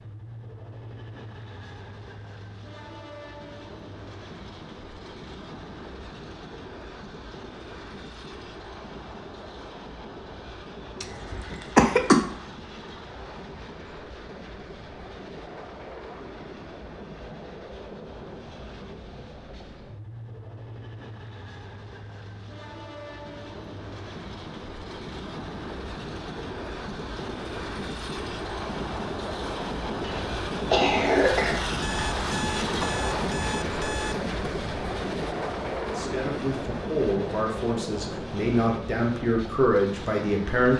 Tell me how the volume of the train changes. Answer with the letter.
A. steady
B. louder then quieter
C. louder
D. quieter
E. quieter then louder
C.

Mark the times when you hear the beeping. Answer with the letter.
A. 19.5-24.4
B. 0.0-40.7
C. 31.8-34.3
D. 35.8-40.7
C.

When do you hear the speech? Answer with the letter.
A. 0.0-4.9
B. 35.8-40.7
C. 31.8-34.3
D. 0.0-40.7
B.